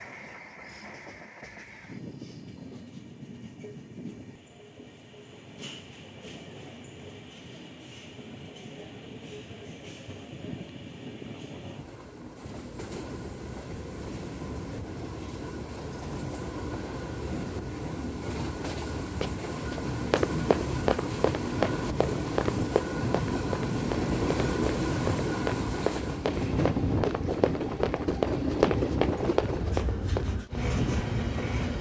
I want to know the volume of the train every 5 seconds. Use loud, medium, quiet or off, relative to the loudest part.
quiet, quiet, medium, medium, loud, loud, loud.